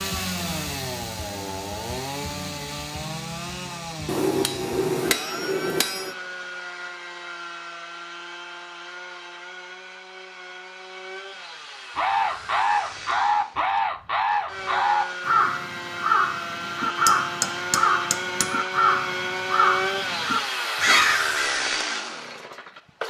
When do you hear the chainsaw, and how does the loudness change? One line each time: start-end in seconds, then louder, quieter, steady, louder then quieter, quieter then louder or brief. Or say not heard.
0.0-23.0 quieter then louder.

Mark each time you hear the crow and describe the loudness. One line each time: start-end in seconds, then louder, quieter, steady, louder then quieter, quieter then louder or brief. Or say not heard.
11.9-21.8 steady.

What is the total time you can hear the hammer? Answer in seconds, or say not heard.
4 s.